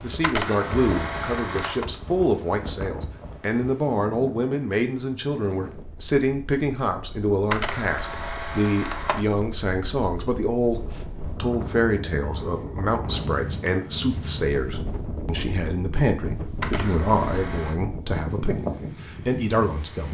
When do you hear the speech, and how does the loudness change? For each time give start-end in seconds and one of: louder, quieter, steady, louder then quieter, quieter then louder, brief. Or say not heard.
0.0-20.0 steady.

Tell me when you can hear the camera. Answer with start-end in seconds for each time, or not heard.
0.2-1.9, 7.5-9.2, 16.6-17.8.